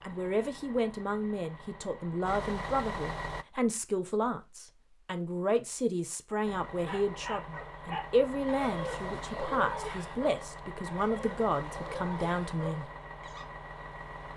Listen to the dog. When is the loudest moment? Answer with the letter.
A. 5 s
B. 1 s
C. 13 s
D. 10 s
D.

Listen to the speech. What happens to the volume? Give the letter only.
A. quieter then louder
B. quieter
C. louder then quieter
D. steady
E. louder
D.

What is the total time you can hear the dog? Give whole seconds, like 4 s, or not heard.
7 s.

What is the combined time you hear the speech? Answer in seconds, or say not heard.
13 s.